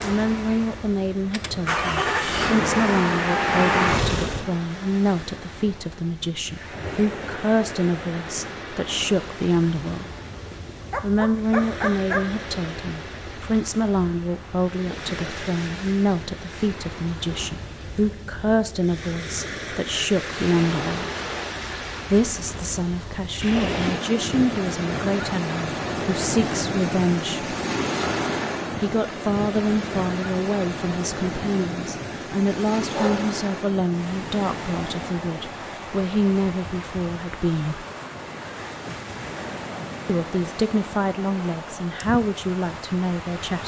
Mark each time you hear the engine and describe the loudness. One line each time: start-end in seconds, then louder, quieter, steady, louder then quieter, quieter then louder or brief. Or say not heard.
0.0-4.5 louder.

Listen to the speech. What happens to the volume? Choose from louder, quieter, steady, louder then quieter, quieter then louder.
steady.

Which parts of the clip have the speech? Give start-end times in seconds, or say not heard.
0.0-10.1, 11.0-21.1, 22.1-27.6, 28.8-37.9, 40.0-43.6.